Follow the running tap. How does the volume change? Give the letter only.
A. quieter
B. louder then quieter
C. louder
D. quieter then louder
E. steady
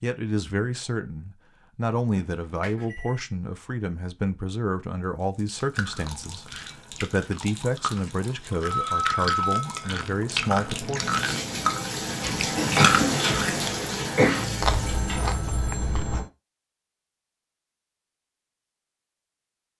C.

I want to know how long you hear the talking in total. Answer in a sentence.
You can hear the talking for 11 seconds altogether.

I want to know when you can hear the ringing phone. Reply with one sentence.
You can hear the ringing phone from 2.1 to 3.2 s, from 8.6 to 9.8 s and from 14.3 to 16.3 s.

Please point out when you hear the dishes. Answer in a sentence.
You can't hear the dishes here.